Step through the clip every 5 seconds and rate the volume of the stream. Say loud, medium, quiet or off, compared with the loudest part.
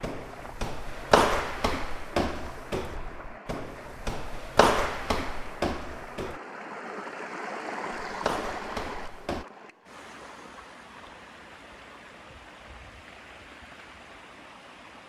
medium, loud, medium.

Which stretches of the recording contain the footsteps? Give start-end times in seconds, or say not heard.
0.0-6.4, 8.1-9.4.